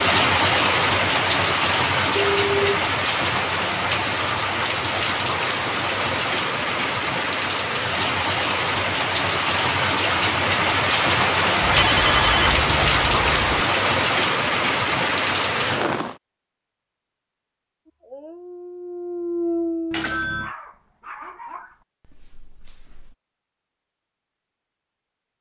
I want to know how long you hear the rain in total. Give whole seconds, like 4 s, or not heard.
16 s.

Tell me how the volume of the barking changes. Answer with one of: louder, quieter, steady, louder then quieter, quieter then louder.
louder then quieter.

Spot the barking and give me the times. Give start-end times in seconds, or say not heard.
17.9-23.1.